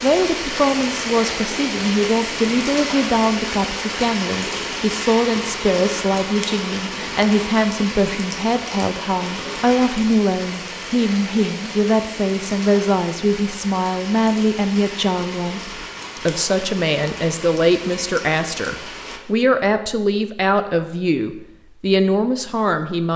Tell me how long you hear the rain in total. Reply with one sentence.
The rain can be heard for 19 seconds in total.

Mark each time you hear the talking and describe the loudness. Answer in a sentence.
The talking can be heard from 0.0 to 23.1 s, at a steady volume.